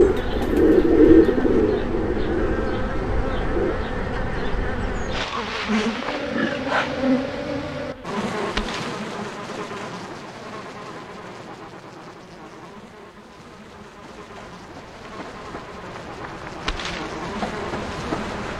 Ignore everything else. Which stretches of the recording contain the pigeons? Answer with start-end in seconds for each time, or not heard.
0.0-3.8.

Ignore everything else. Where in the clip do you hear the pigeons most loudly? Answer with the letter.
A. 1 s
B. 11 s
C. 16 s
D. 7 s
A.